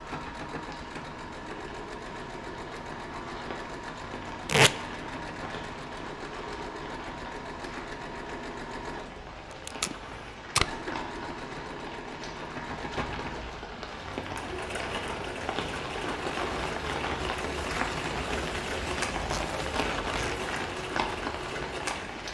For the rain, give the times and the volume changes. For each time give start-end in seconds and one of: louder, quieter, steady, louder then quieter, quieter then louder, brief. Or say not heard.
0.0-22.3 louder.